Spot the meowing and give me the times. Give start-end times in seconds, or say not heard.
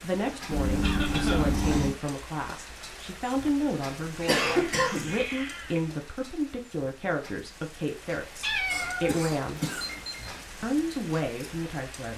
0.5-1.9, 4.2-5.8, 8.4-10.2.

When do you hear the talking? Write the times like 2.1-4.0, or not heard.
0.0-9.6, 10.6-12.1.